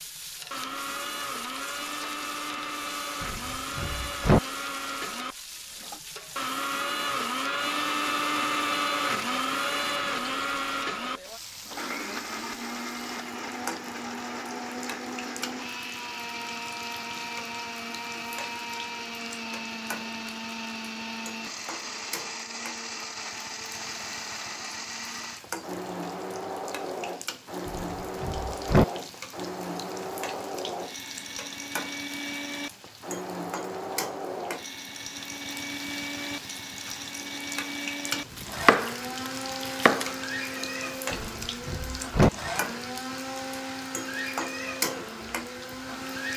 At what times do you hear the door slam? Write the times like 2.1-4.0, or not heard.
3.2-4.4, 27.6-28.9, 41.1-42.3.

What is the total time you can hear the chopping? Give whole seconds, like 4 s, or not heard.
2 s.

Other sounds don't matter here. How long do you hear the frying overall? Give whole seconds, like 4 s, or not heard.
46 s.